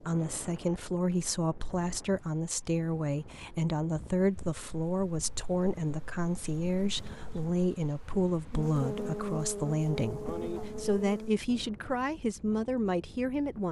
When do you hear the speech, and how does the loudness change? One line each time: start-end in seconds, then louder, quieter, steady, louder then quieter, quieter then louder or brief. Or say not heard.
0.0-13.6 steady.